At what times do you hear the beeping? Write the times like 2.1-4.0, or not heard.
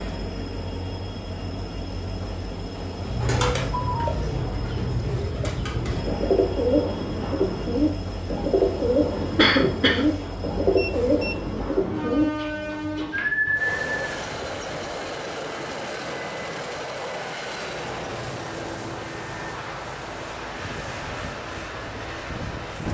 10.8-11.3.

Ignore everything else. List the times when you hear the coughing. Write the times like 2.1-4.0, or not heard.
9.3-10.1.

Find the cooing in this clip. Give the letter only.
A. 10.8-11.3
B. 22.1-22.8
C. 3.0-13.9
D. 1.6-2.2
C.